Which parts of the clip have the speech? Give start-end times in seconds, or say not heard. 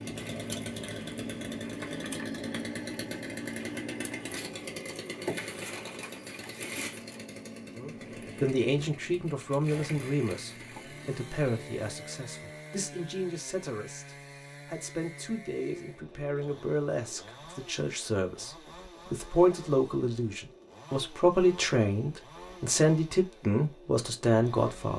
7.8-24.9.